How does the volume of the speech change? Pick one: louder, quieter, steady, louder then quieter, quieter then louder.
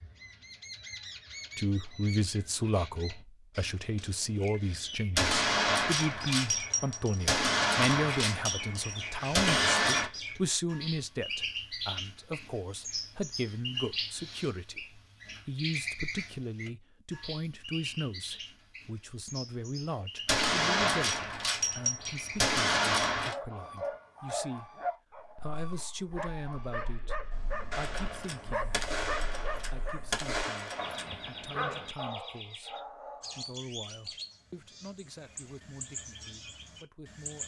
quieter.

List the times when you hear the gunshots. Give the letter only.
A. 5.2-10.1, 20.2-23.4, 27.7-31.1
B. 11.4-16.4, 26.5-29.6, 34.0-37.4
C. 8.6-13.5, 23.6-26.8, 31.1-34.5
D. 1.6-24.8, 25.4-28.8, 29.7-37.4
A.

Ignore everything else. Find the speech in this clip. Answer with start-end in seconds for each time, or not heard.
1.6-24.8, 25.4-28.8, 29.7-37.4.